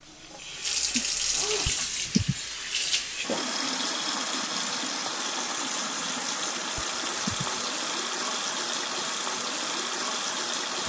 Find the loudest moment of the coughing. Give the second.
2 s.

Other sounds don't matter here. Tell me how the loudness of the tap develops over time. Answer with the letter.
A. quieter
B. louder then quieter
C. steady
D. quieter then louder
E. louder
C.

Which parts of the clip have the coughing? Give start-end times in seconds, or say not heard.
1.6-2.5, 6.8-7.7.